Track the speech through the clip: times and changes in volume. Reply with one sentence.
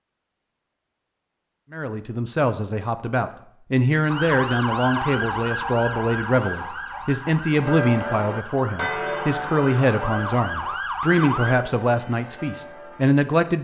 The speech can be heard from 1.7 to 13.5 s, at a steady volume.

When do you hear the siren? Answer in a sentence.
The siren can be heard from 4.0 to 11.6 s.